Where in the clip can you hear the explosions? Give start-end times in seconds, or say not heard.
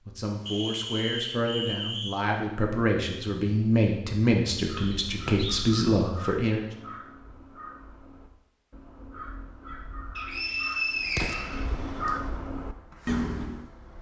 11.1-11.6.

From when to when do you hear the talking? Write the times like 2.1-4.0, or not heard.
0.1-6.7.